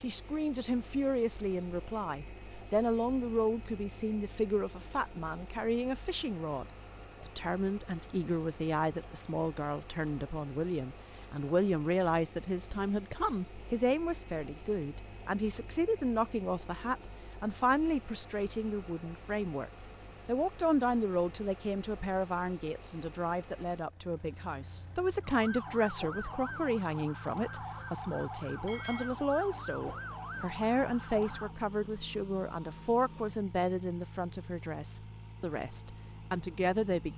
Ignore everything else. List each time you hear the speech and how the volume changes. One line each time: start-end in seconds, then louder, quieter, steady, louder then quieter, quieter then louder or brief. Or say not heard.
0.0-37.1 steady.